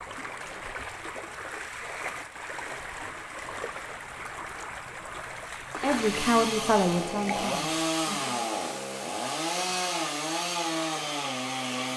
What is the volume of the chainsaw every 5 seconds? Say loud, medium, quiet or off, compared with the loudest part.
off, loud, loud.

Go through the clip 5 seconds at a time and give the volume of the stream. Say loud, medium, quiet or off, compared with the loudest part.
loud, loud, medium.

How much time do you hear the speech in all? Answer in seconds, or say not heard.
3 s.